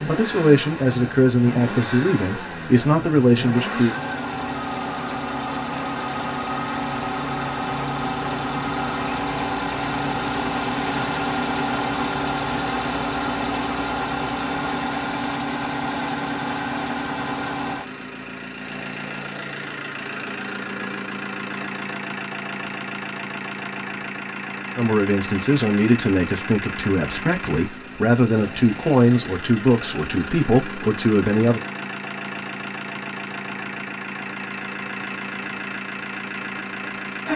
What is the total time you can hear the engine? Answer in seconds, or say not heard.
37 s.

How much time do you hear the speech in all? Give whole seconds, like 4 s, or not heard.
11 s.